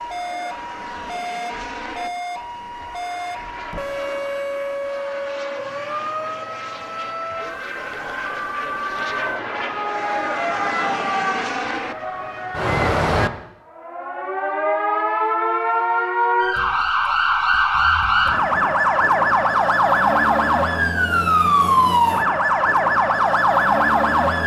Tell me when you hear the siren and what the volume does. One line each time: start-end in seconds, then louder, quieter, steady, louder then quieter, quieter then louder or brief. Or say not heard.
0.0-24.4 louder.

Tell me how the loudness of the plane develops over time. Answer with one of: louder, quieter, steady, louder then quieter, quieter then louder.
louder.